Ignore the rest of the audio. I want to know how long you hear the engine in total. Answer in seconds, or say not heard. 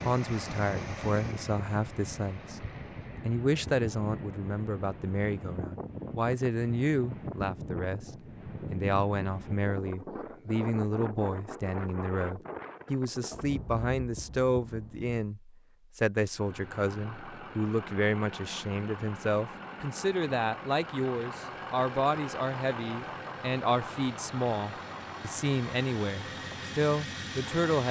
15 s.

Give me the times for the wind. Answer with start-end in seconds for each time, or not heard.
0.0-15.2.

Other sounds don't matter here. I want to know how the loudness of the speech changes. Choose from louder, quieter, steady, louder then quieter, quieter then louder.
steady.